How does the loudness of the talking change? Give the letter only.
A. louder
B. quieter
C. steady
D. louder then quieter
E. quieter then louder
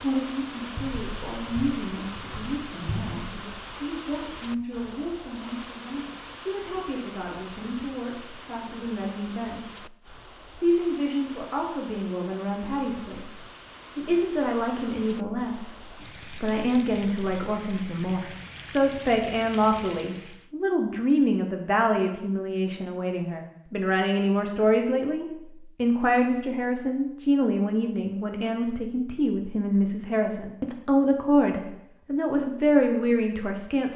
A.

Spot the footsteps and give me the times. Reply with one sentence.
You can't hear the footsteps here.